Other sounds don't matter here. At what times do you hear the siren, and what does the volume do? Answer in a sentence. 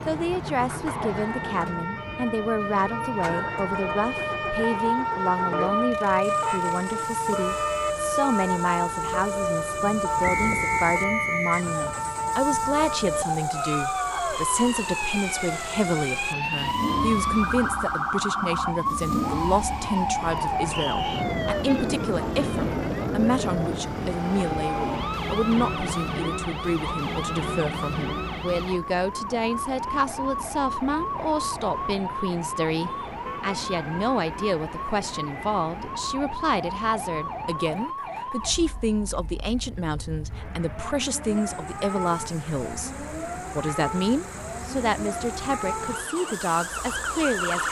You can hear the siren from 0.0 to 47.6 s, getting quieter.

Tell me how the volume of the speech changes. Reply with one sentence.
The loudness of the speech stays about the same.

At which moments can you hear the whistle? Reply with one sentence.
You can hear the whistle from 10.2 to 11.7 s.